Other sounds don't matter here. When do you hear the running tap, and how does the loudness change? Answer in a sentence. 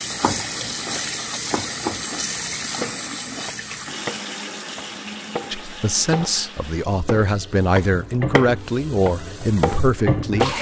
The running tap can be heard from 0.0 to 10.5 s, getting quieter then louder.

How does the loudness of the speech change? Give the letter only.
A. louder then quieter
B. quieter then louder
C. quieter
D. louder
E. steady
E.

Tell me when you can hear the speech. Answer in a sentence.
You can hear the speech from 5.5 to 10.5 s.